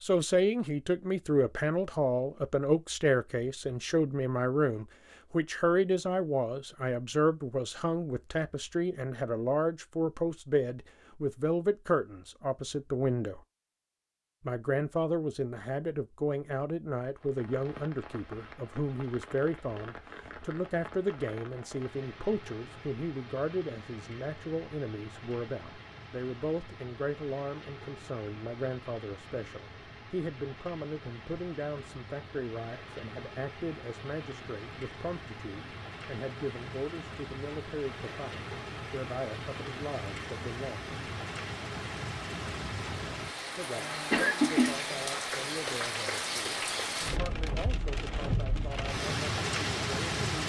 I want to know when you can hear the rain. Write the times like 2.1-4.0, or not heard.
17.1-50.4.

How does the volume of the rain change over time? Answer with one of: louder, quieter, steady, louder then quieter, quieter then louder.
louder.